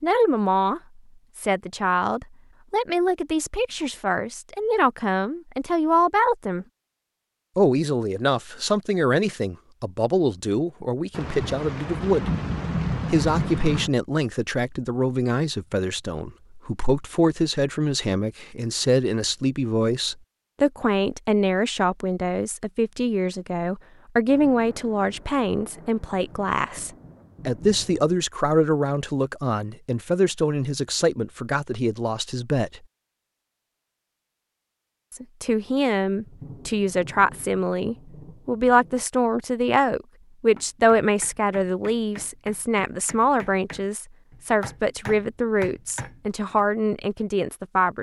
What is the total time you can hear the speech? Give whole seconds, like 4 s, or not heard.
44 s.